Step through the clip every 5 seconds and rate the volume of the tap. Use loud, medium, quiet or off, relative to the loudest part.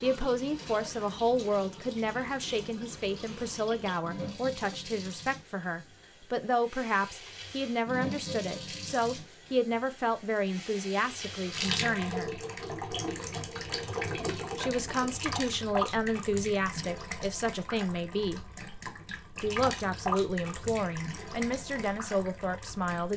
medium, medium, loud, loud, loud.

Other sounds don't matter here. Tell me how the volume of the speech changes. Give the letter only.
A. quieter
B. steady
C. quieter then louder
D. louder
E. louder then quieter
B.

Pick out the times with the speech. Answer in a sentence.
You can hear the speech from 0.0 to 12.3 s, from 14.6 to 18.5 s and from 19.4 to 23.1 s.